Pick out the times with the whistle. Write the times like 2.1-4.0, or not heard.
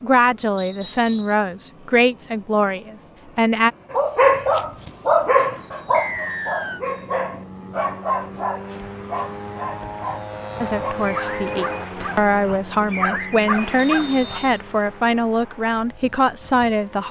0.6-1.4, 5.9-6.8, 13.8-14.6.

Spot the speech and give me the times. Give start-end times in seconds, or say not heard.
0.0-3.7, 10.6-17.0.